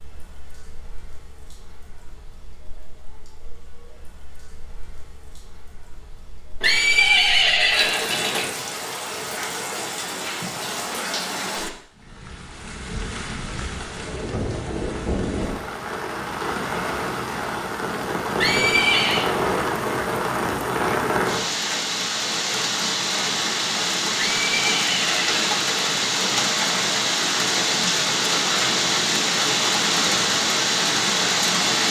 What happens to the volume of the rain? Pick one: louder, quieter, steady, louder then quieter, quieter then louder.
louder.